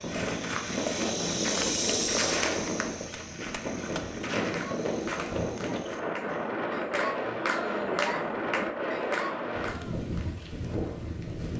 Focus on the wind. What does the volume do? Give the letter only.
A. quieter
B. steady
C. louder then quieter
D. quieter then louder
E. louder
B.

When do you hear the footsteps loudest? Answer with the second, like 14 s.
2 s.